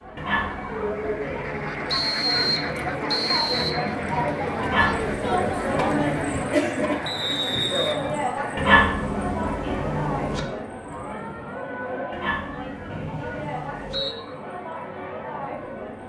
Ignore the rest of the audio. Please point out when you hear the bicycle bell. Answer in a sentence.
You can't hear the bicycle bell here.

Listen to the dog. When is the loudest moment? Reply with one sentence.
The loudest moment of the dog is at 9 seconds.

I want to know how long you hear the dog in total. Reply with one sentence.
The dog can be heard for 7 seconds in total.